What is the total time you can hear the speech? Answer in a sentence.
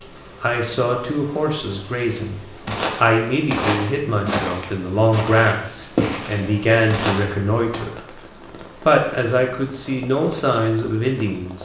The speech can be heard for 10 seconds in total.